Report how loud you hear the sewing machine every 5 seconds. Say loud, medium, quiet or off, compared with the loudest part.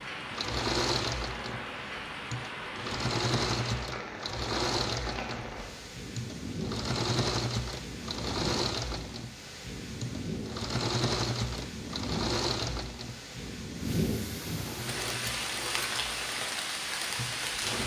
loud, loud, loud, medium.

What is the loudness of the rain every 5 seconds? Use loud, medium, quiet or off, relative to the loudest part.
medium, medium, loud, loud.